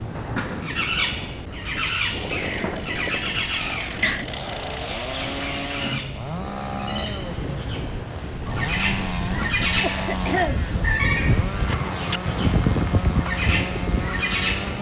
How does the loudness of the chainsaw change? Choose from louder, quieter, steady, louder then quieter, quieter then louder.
steady.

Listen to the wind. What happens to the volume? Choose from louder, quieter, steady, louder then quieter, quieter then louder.
louder.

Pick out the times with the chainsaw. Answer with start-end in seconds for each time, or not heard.
2.1-14.7.